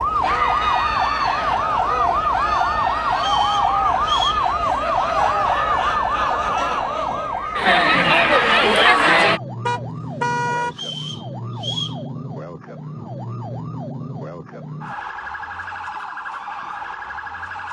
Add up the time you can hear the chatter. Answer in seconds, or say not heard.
9 s.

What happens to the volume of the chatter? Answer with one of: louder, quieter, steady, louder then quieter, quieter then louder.
louder.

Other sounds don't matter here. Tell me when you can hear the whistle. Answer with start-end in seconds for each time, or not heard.
3.1-4.5, 10.7-12.0.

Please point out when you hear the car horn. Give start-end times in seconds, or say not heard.
9.7-10.8.